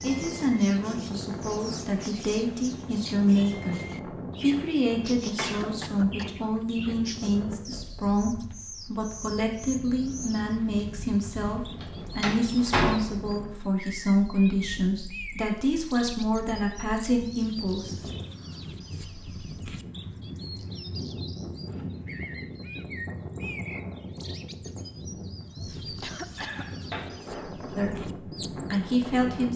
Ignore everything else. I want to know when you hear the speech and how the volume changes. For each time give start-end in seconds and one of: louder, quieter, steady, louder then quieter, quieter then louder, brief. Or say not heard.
0.0-18.1 steady
27.8-29.5 brief.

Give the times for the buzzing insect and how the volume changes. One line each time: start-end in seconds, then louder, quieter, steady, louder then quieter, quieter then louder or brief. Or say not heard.
not heard.